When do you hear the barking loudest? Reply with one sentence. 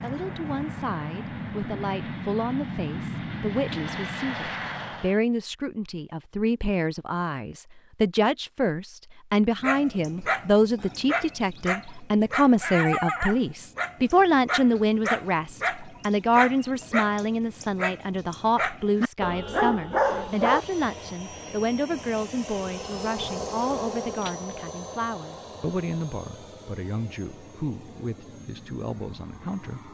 The loudest moment of the barking is at 20 seconds.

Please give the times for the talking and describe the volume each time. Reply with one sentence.
The talking can be heard from 0.0 to 29.8 s, getting louder then quieter.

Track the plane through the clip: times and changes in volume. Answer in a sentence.
You can hear the plane from 0.0 to 5.2 s, at a steady volume; and from 19.9 to 29.8 s, getting louder then quieter.